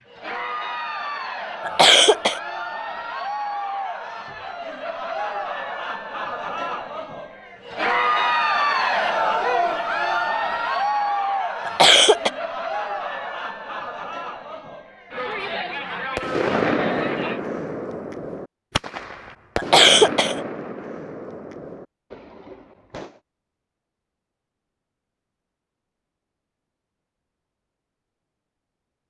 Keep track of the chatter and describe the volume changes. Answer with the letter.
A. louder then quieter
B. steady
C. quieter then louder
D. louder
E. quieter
A.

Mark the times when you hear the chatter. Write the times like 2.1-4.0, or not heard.
0.1-17.4.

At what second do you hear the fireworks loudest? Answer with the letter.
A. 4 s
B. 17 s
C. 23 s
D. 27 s
B.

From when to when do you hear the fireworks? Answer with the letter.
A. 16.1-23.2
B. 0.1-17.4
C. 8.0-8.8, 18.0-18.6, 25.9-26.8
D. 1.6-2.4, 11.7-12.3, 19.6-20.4
A.